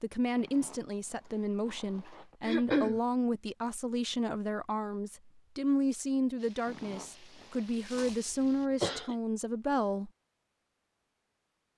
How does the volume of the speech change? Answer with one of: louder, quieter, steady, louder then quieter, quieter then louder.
steady.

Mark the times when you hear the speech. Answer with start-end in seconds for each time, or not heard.
0.0-10.1.